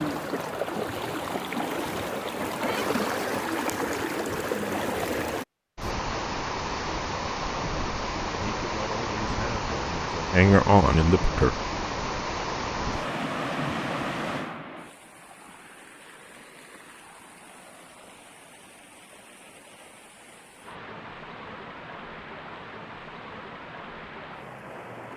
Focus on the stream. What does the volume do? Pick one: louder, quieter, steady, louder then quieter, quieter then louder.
quieter then louder.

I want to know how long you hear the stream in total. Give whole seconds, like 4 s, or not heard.
25 s.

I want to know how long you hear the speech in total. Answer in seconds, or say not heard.
3 s.